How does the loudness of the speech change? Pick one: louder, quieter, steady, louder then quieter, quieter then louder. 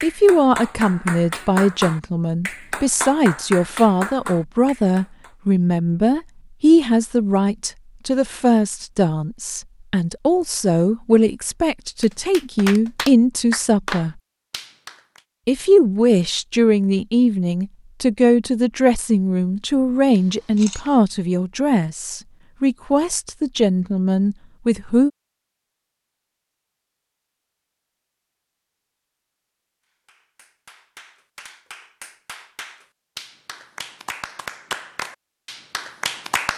steady.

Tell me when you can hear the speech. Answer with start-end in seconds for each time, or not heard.
0.0-14.2, 15.4-25.1.